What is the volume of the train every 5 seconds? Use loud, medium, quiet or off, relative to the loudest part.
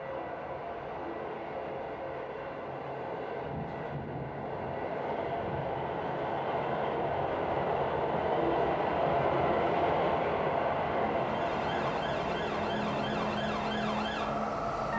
medium, loud, loud.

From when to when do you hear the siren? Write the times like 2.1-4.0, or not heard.
11.2-14.9.